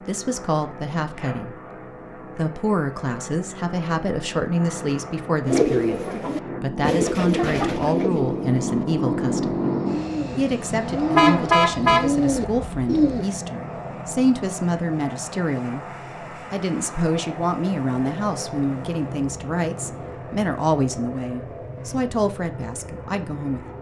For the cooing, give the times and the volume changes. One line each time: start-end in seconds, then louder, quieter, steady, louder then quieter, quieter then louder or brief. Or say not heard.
5.5-13.2 quieter then louder.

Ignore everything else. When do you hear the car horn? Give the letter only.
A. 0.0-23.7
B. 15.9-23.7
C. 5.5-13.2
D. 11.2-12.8
D.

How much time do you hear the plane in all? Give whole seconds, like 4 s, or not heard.
24 s.